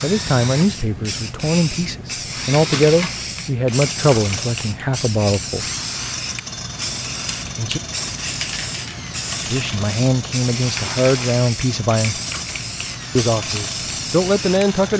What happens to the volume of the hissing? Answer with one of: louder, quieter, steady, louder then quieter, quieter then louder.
steady.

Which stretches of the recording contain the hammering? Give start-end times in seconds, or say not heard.
not heard.